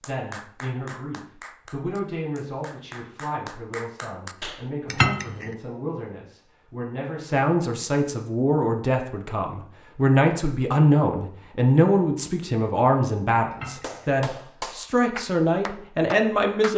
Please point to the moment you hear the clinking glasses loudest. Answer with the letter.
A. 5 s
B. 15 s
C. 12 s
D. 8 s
A.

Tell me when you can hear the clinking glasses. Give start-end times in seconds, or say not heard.
4.9-5.5, 13.5-14.2.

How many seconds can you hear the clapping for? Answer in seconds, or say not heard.
8 s.